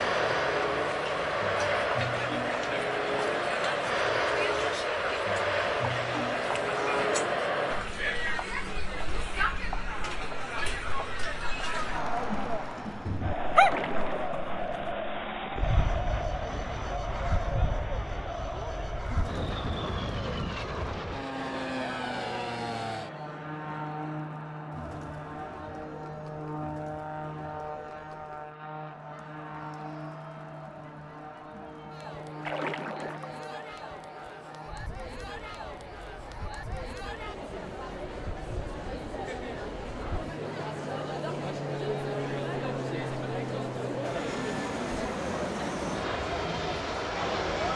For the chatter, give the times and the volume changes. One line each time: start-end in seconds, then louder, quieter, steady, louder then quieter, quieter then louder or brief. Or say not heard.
0.0-47.7 quieter then louder.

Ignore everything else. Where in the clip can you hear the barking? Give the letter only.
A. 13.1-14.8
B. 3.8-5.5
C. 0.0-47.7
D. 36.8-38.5
A.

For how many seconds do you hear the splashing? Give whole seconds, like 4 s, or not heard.
2 s.